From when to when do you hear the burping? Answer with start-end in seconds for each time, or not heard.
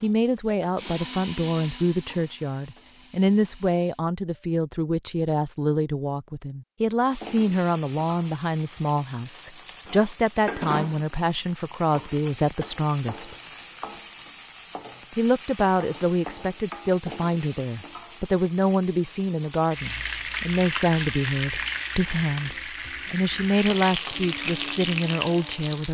not heard.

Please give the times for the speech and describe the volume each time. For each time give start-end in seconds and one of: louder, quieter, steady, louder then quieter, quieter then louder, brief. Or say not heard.
0.0-13.3 steady
15.2-25.8 steady.